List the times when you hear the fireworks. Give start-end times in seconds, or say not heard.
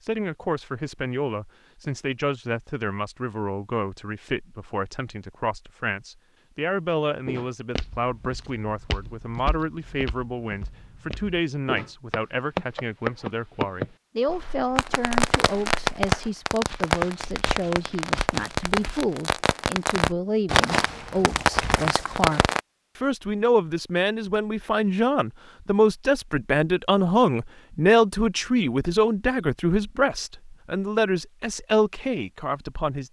14.8-22.6.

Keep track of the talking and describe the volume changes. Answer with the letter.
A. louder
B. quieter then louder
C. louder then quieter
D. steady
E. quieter
A.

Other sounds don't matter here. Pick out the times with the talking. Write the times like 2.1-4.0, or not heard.
0.0-33.0.